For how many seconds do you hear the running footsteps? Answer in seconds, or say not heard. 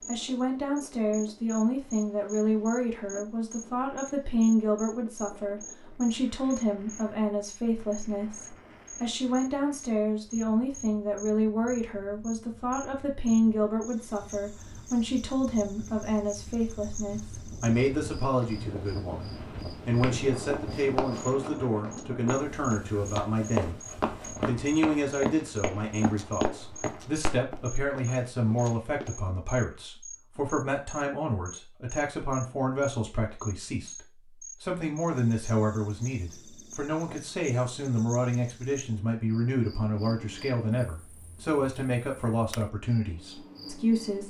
9 s.